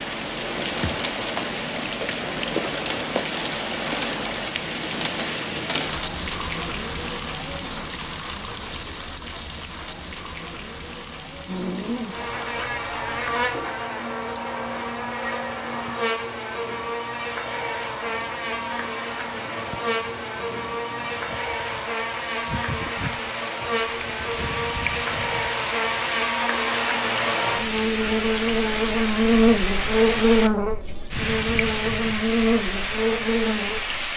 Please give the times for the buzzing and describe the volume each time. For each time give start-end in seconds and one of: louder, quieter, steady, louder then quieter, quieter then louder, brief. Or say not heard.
11.4-34.1 louder.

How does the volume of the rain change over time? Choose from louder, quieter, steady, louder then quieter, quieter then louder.
quieter then louder.